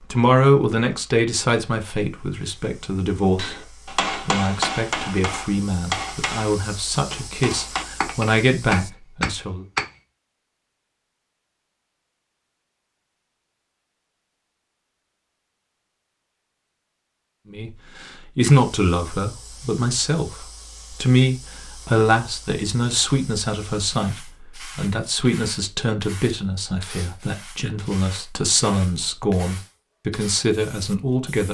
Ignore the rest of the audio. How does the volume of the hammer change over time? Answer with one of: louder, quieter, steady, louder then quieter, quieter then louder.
quieter then louder.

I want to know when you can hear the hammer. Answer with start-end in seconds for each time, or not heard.
3.4-9.8.